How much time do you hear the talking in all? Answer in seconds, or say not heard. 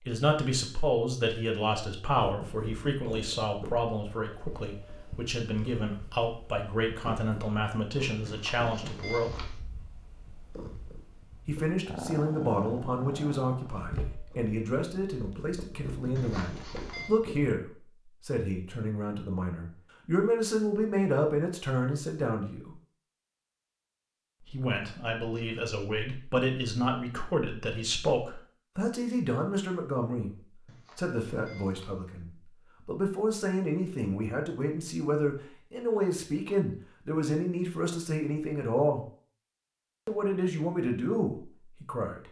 37 s.